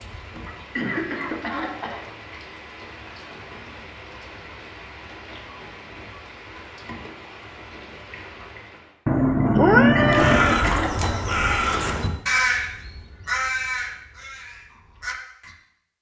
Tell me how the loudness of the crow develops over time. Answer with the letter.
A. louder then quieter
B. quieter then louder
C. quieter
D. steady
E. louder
C.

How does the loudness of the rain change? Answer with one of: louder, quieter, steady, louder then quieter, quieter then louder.
steady.